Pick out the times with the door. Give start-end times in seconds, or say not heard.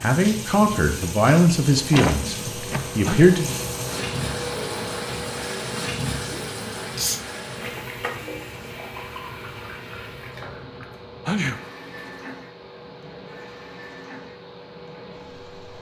1.9-3.0.